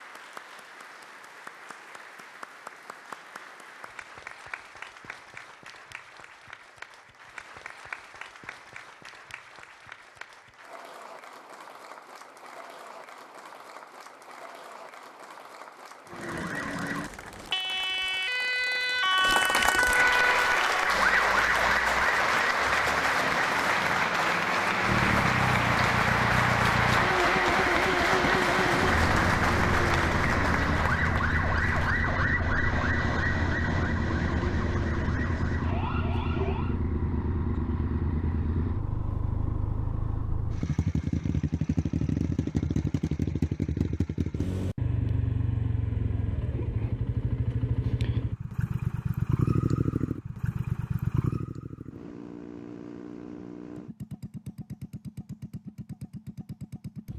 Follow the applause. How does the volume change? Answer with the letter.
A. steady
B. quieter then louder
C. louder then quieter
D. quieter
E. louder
E.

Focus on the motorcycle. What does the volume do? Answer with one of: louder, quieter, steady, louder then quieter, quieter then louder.
quieter.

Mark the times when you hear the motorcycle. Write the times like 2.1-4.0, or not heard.
24.8-57.1.